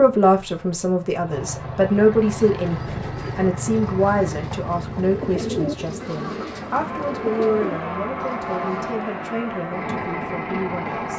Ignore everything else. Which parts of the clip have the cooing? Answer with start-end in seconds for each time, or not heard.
2.5-8.9.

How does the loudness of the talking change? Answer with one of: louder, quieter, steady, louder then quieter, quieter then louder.
quieter.